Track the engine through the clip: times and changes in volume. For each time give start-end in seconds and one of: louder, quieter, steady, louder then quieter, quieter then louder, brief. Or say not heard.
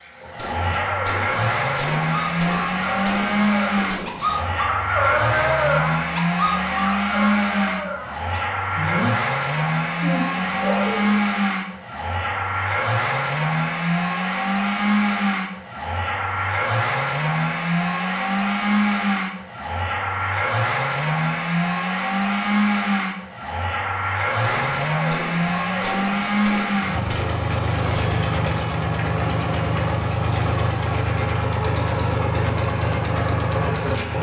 0.0-34.1 steady.